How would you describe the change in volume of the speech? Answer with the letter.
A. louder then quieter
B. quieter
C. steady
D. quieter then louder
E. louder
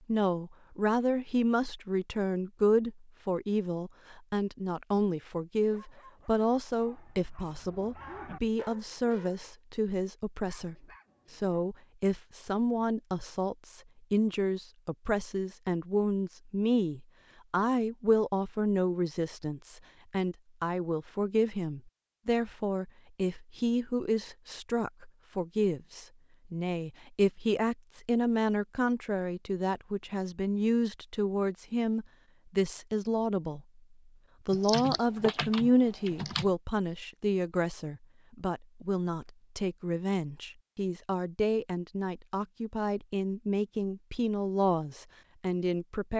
C.